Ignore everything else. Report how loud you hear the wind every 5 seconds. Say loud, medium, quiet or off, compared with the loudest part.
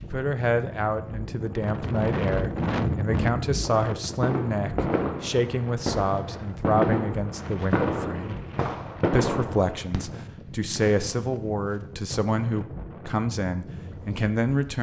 loud, medium, medium.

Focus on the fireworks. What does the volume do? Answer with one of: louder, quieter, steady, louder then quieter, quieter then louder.
quieter.